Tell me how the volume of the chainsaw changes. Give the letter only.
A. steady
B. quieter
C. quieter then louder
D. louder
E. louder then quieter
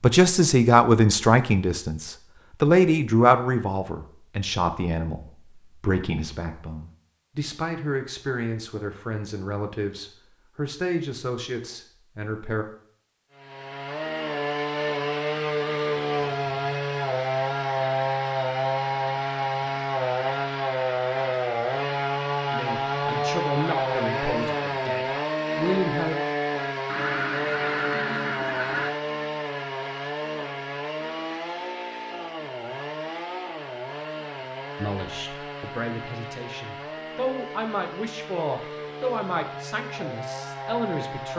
B.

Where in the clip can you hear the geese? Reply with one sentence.
The geese can be heard from 26.9 to 28.9 s.